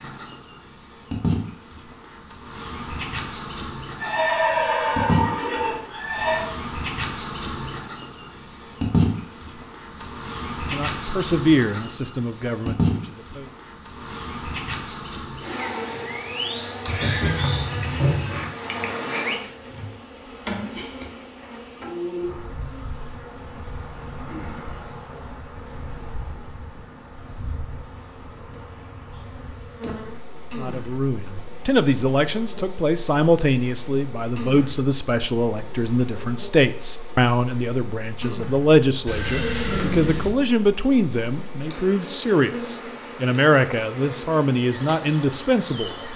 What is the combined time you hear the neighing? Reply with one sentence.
You can hear the neighing for 5 seconds altogether.